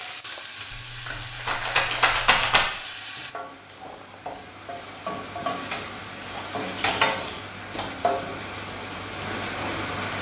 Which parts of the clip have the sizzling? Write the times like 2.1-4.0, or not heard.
0.0-10.1.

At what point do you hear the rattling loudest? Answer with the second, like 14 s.
2 s.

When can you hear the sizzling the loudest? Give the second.
7 s.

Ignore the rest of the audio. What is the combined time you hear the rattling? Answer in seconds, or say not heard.
3 s.